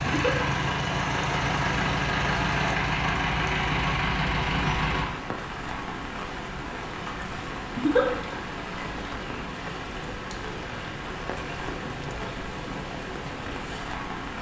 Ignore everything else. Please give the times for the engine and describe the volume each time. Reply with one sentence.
The engine can be heard from 0.0 to 5.1 s, at a steady volume.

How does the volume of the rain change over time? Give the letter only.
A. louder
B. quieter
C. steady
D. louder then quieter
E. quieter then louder
C.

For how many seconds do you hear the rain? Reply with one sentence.
The rain can be heard for 14 seconds in total.